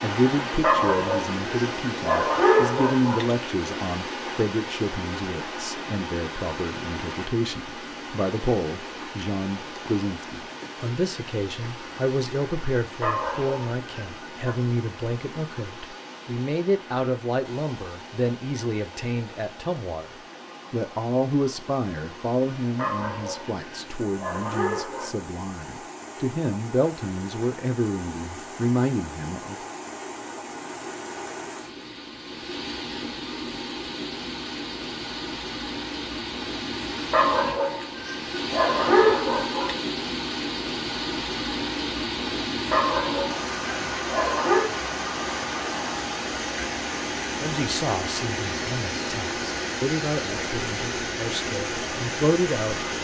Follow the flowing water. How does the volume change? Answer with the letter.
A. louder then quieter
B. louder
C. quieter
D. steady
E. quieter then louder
E.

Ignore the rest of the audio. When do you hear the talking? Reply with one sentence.
You can hear the talking from 0.0 to 29.6 s and from 47.4 to 52.8 s.